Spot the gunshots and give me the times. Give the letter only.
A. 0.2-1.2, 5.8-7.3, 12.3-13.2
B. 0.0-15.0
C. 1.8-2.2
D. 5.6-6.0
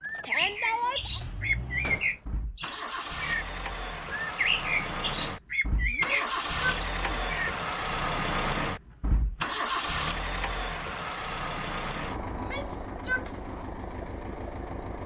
C.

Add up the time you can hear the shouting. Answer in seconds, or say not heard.
3 s.